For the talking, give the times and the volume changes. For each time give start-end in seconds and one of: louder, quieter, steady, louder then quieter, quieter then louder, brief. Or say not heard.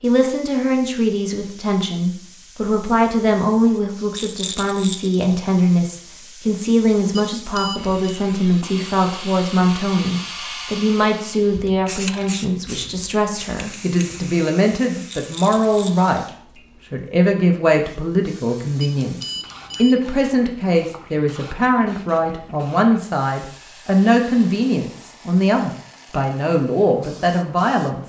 0.0-28.0 steady.